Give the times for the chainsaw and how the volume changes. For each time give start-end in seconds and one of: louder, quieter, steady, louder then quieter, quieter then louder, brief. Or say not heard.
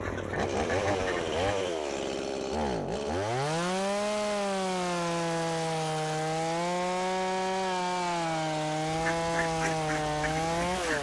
0.0-10.9 steady.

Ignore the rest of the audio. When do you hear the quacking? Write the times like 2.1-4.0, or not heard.
0.0-1.6, 8.8-10.9.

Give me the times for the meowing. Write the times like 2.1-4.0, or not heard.
not heard.